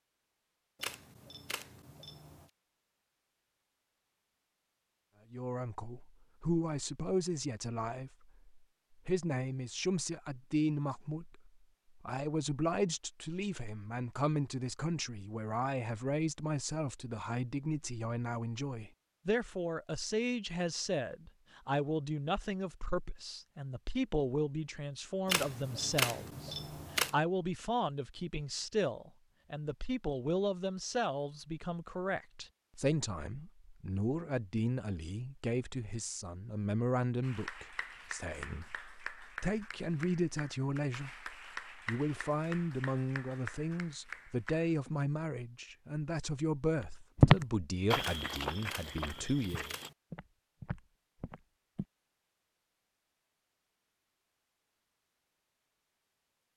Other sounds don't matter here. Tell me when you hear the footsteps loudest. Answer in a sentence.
The loudest moment of the footsteps is at 47 seconds.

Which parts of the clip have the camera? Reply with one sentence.
The camera can be heard from 0.8 to 2.5 s, from 25.2 to 27.1 s and from 48.0 to 50.0 s.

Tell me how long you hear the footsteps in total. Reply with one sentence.
You can hear the footsteps for 5 seconds altogether.